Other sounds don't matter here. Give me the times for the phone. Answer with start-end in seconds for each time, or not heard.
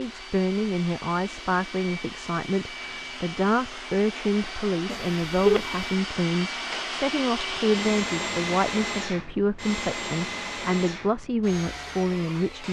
4.8-5.7.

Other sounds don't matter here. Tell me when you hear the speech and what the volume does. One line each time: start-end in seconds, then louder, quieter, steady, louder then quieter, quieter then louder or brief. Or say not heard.
0.0-12.6 steady.